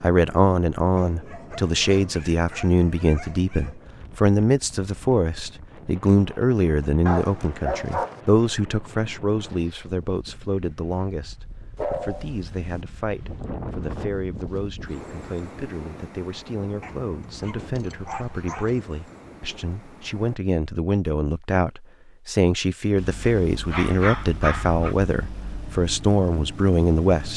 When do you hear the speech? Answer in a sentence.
The speech can be heard from 0.0 to 27.3 s.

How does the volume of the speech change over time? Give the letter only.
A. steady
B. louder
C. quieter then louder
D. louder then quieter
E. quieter
C.